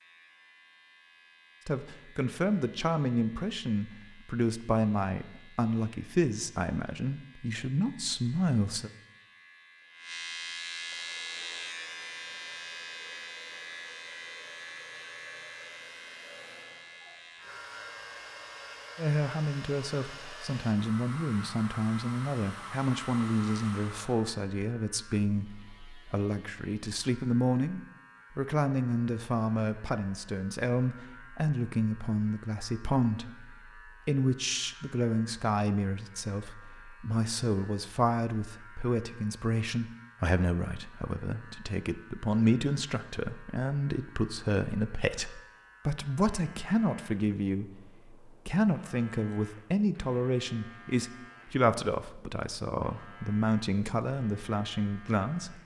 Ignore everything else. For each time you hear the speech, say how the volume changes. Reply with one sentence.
You can hear the speech from 1.6 to 8.9 s, at a steady volume; and from 18.9 to 55.6 s, at a steady volume.